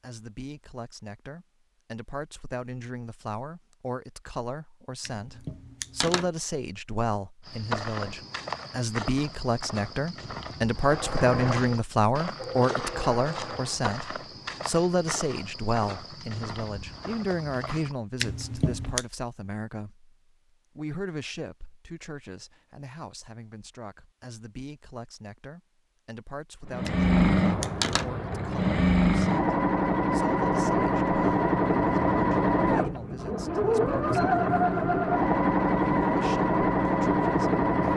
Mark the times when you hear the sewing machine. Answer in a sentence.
The sewing machine can be heard from 10.8 to 13.8 s and from 26.6 to 37.9 s.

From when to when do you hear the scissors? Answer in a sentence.
The scissors can be heard from 5.0 to 6.3 s, from 18.2 to 19.1 s and from 26.9 to 28.1 s.